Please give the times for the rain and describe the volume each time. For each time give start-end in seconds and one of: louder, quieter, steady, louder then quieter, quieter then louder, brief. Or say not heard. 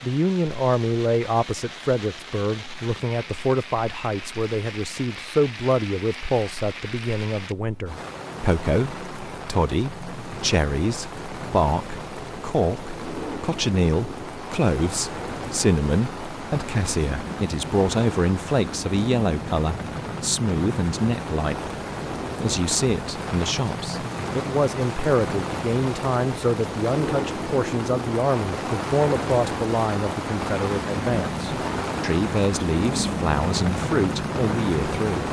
0.0-35.2 louder.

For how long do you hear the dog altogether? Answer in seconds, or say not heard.
not heard.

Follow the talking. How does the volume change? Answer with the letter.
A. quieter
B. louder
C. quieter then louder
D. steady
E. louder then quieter
D.